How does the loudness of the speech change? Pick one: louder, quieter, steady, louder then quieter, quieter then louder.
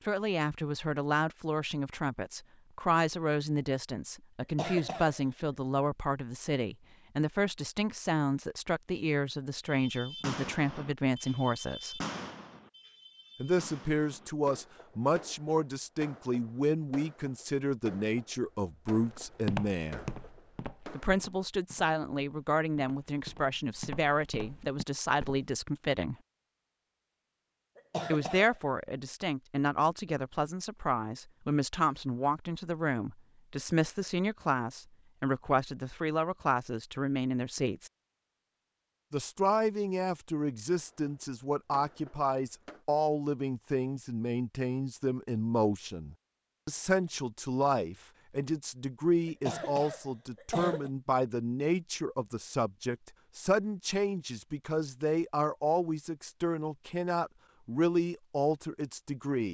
steady.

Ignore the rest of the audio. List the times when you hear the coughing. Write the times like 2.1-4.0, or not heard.
4.4-5.2, 27.8-28.6, 49.2-50.9.